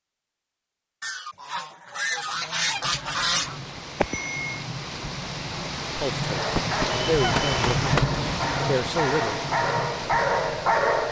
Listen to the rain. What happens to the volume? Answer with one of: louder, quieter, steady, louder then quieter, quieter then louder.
louder then quieter.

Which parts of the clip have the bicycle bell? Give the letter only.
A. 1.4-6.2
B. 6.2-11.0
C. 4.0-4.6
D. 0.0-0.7
C.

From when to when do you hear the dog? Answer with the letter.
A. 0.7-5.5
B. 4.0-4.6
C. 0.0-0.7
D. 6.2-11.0
D.